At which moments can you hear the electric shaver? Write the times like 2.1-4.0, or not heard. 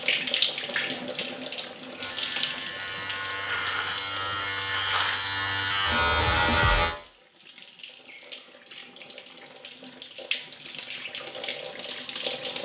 1.9-7.0.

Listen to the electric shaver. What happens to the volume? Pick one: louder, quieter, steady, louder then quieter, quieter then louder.
louder.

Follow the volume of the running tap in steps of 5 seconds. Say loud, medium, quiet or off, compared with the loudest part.
loud, quiet, loud.